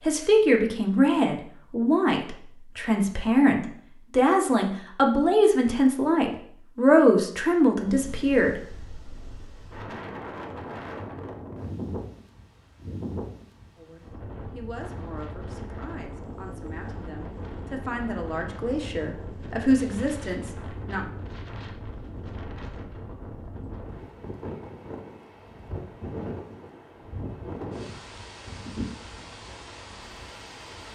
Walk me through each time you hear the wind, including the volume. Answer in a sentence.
You can hear the wind from 7.8 to 30.9 s, at a steady volume.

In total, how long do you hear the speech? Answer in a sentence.
The speech can be heard for 16 seconds in total.